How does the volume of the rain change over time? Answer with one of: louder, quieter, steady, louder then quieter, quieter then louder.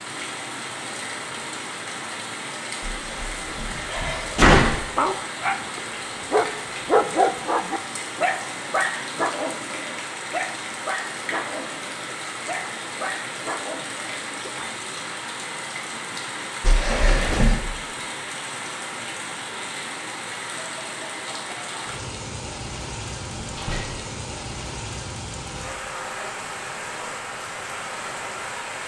steady.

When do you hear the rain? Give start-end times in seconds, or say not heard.
0.0-28.8.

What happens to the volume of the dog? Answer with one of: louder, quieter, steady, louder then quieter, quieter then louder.
quieter.